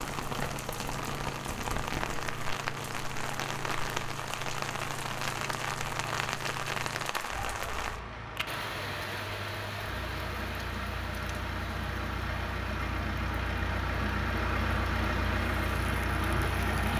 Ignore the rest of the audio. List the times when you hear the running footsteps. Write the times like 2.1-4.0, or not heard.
not heard.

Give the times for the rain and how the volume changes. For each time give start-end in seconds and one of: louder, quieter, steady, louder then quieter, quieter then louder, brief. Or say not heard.
0.0-16.9 quieter.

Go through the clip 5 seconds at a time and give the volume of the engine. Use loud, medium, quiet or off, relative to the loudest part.
medium, medium, loud, loud.